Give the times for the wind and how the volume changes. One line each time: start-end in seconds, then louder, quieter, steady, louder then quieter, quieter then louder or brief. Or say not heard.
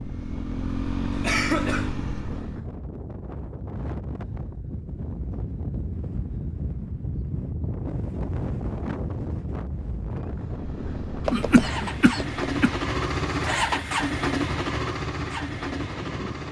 0.0-16.4 louder then quieter.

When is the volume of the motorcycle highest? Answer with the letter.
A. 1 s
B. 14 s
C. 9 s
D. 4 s
B.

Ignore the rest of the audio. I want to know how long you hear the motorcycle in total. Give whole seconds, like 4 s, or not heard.
9 s.